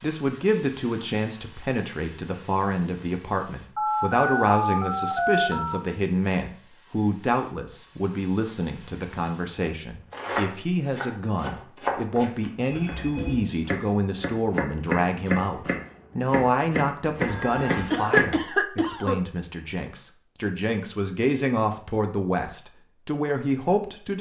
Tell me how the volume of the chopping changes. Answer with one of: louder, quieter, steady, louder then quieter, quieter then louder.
quieter then louder.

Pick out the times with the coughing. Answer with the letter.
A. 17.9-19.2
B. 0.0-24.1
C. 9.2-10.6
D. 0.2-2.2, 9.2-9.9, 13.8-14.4
A.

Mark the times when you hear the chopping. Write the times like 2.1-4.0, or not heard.
10.1-18.2.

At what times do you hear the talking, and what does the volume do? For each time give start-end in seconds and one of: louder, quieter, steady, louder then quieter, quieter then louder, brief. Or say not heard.
0.0-24.1 steady.